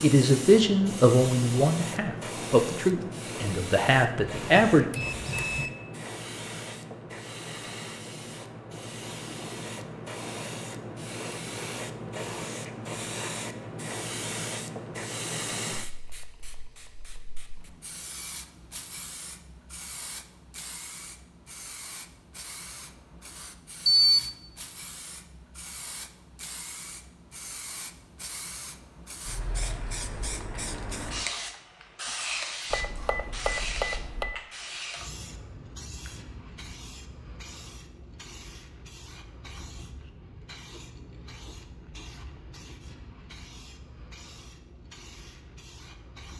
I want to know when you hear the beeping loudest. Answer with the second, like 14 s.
24 s.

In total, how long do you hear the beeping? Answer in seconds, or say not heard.
4 s.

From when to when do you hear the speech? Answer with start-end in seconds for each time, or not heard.
0.0-4.8.